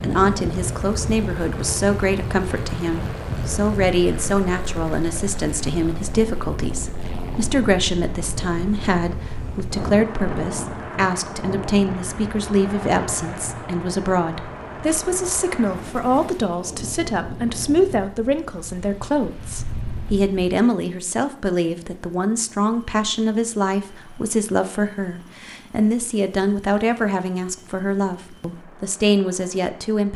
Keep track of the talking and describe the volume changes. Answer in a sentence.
The volume of the talking stays about the same.